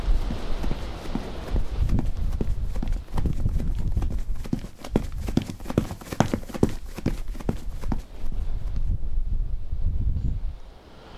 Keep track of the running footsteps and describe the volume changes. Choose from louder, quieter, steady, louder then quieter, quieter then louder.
louder then quieter.